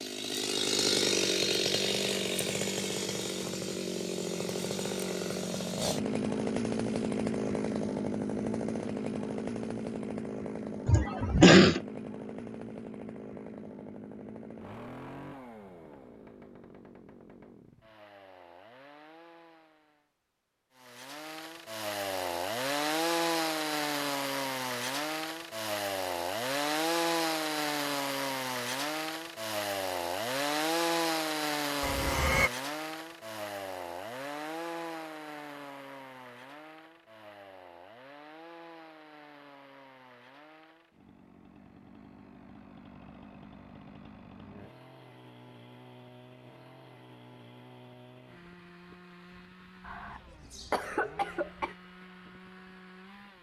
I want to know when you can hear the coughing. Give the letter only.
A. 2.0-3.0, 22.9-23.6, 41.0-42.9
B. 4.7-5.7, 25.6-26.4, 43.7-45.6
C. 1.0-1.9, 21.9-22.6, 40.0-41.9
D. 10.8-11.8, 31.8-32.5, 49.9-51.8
D.